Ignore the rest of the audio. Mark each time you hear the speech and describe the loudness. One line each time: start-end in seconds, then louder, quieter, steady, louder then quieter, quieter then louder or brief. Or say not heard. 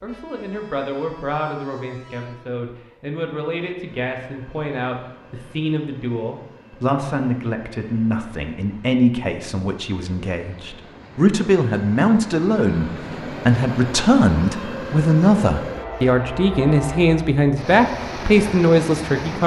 0.0-19.4 louder.